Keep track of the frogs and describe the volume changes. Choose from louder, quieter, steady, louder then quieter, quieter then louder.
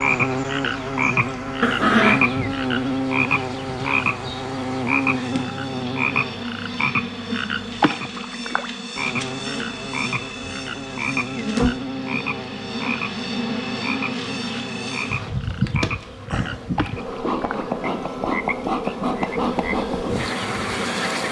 quieter.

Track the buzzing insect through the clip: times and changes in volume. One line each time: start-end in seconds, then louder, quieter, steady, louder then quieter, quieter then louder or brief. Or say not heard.
0.0-21.2 louder.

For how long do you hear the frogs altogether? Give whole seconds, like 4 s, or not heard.
21 s.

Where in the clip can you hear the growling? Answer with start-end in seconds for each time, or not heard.
1.6-2.2.